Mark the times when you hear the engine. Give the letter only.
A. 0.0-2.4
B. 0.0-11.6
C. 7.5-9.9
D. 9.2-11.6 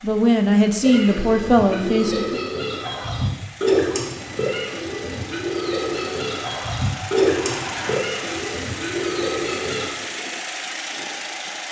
B.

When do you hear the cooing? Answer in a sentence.
You can hear the cooing from 0.8 to 9.9 s.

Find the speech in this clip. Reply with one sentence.
The speech can be heard from 0.0 to 2.4 s.